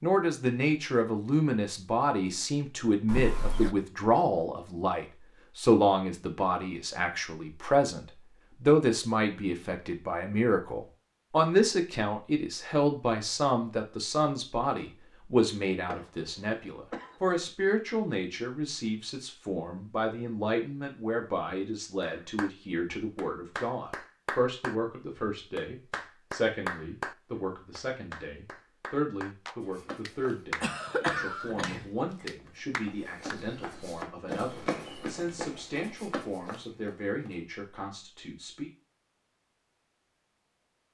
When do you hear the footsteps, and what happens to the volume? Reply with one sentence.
The footsteps can be heard from 29.6 to 37.4 s, getting louder then quieter.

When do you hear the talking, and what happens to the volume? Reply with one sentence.
The talking can be heard from 0.0 to 38.7 s, getting quieter.